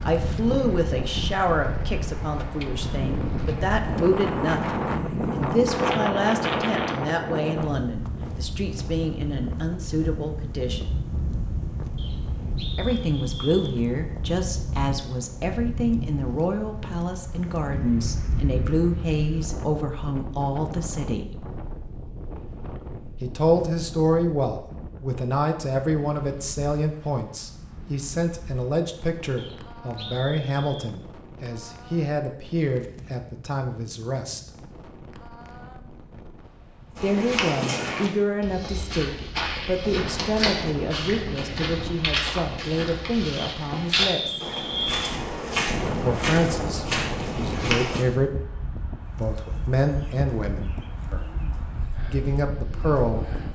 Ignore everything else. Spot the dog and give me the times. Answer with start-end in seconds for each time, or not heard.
not heard.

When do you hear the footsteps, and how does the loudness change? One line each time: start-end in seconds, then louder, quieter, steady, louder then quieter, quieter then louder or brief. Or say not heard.
37.0-48.0 steady.